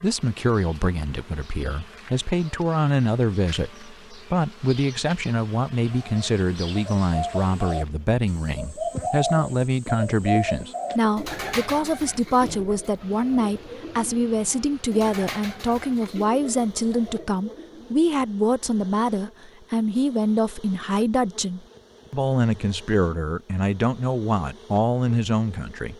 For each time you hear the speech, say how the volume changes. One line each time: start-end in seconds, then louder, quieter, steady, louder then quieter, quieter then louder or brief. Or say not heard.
0.0-25.9 steady.